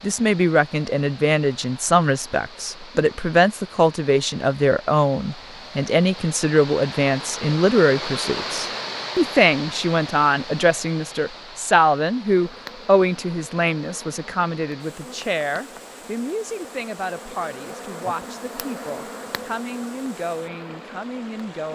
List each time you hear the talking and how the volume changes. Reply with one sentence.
The talking can be heard from 0.0 to 21.6 s, getting quieter.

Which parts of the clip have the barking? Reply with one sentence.
You can't hear the barking here.